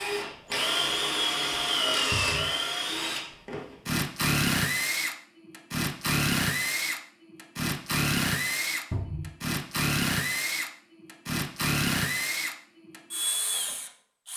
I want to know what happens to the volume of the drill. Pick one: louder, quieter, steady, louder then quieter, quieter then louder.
steady.